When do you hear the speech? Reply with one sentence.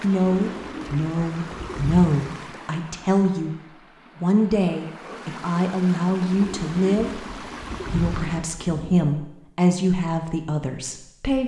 You can hear the speech from 0.0 to 3.5 s and from 4.2 to 11.4 s.